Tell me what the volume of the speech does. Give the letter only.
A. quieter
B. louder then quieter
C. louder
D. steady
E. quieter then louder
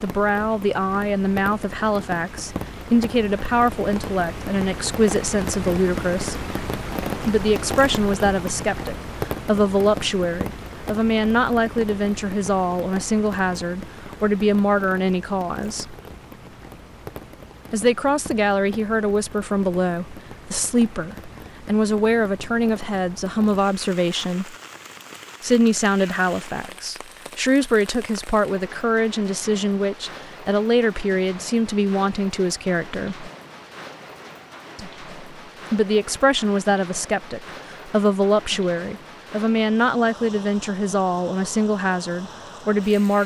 D.